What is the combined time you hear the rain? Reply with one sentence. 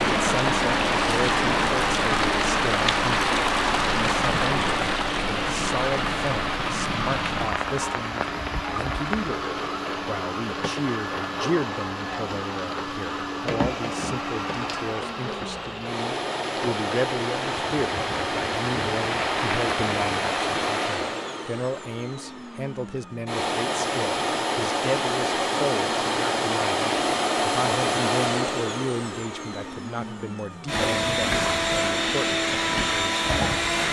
You can hear the rain for 21 seconds altogether.